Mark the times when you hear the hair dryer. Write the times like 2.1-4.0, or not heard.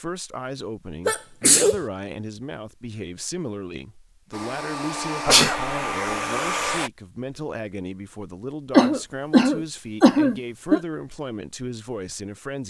4.3-6.9.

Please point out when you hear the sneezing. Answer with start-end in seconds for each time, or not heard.
1.1-1.8, 5.2-5.8, 8.7-10.8.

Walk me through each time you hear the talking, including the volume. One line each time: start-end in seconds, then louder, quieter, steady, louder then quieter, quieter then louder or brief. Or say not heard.
0.0-12.6 steady.